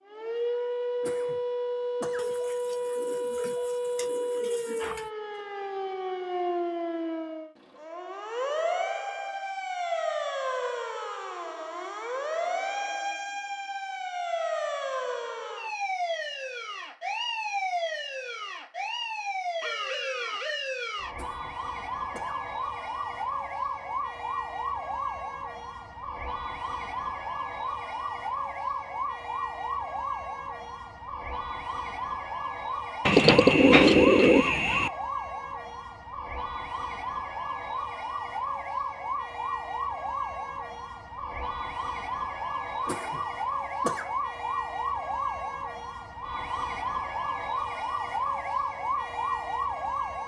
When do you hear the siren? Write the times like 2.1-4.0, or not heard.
0.1-50.2.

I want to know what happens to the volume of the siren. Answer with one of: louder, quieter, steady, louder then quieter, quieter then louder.
steady.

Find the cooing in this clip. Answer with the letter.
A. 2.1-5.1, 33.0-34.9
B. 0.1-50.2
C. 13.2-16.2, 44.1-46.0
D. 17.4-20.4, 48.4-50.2
A.